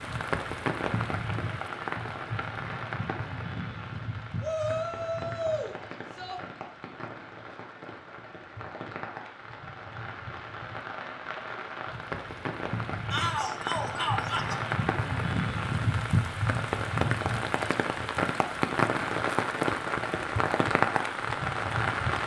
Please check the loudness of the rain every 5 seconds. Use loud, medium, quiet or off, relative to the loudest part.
medium, quiet, medium, loud, loud.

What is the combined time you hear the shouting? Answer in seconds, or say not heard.
4 s.